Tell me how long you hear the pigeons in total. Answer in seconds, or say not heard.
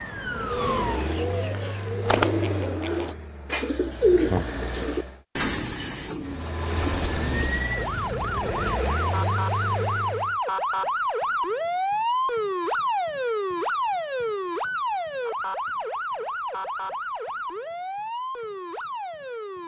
9 s.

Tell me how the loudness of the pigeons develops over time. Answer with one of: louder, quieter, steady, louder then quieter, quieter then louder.
louder then quieter.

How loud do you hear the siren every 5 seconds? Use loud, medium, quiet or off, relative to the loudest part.
medium, loud, loud, medium.